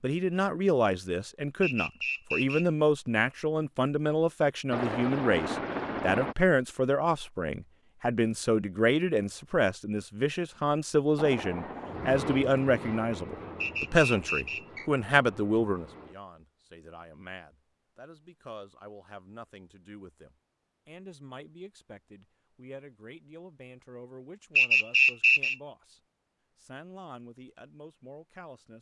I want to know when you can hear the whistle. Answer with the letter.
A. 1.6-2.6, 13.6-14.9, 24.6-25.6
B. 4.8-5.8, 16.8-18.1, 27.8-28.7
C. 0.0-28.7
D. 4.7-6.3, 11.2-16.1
A.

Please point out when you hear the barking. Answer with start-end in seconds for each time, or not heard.
not heard.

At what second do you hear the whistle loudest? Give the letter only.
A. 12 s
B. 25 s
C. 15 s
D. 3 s
B.